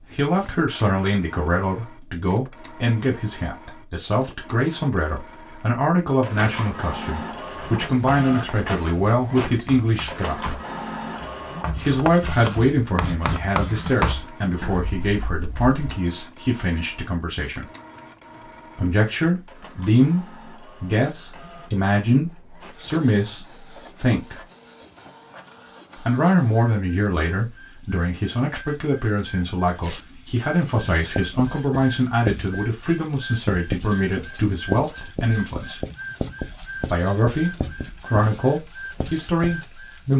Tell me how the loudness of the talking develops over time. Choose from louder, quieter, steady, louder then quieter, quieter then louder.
steady.